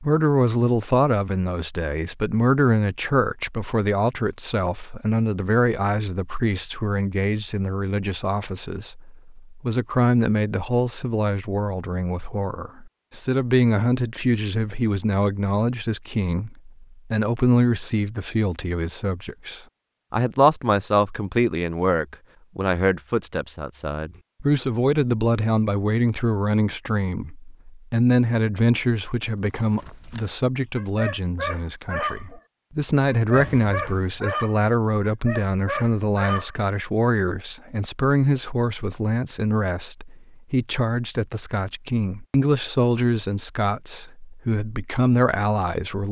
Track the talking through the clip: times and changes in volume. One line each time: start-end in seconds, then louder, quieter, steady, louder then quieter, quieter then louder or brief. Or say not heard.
0.0-46.0 steady.